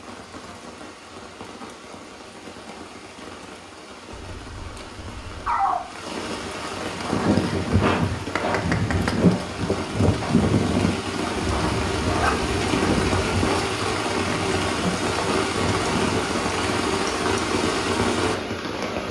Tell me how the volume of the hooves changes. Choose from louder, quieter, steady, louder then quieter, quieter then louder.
quieter.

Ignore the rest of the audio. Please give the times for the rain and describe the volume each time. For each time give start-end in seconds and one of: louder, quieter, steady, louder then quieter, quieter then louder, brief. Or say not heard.
0.0-19.0 louder.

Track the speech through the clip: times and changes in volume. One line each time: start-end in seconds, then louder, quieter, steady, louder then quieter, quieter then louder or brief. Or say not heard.
not heard.